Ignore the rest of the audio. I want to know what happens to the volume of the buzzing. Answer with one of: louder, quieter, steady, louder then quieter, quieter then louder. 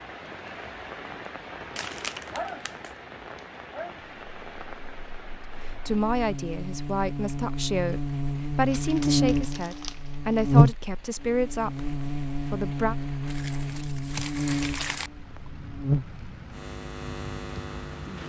louder then quieter.